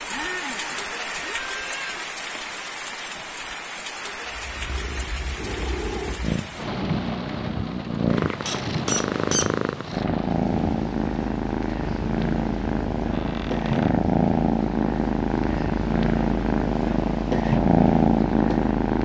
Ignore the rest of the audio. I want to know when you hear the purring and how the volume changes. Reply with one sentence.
You can hear the purring from 4.2 to 18.9 s, getting louder.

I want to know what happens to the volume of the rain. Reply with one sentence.
The loudness of the rain goes down.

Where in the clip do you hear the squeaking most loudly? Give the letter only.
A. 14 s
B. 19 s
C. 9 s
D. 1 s
C.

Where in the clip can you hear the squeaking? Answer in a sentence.
The squeaking can be heard from 0.1 to 2.0 s, from 8.4 to 9.5 s and from 13.1 to 13.9 s.